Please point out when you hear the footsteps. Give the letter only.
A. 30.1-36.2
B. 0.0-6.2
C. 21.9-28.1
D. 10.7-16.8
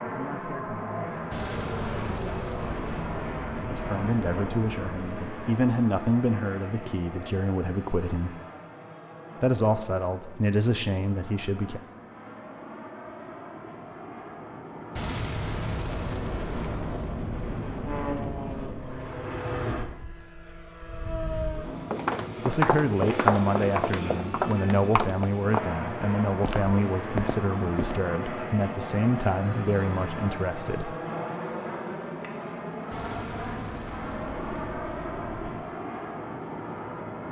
C.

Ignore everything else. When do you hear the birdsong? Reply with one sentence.
The birdsong can't be heard in this clip.